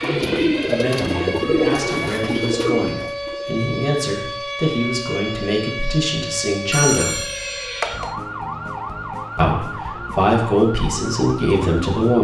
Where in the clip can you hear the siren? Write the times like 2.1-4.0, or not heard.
0.0-12.1.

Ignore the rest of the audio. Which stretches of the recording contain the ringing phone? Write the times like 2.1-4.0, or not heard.
6.7-8.2.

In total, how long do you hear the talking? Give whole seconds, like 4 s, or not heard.
10 s.